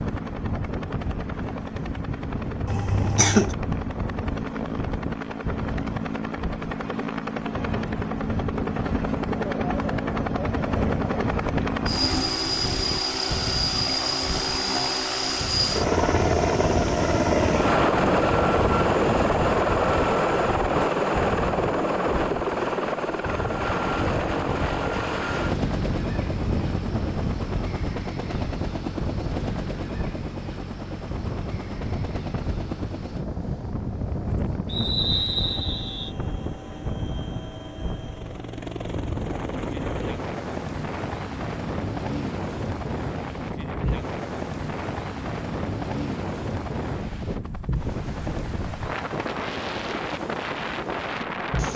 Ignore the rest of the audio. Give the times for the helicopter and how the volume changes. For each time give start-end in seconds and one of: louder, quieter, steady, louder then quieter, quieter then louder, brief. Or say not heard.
0.0-51.7 louder then quieter.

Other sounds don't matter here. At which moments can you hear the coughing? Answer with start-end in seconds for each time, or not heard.
2.6-3.5.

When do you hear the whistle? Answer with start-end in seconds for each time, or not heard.
34.6-36.1.